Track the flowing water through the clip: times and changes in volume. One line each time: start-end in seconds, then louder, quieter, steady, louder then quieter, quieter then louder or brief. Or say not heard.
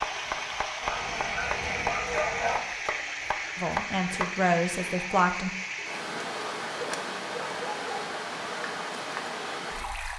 0.0-10.1 steady.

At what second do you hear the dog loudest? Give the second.
2 s.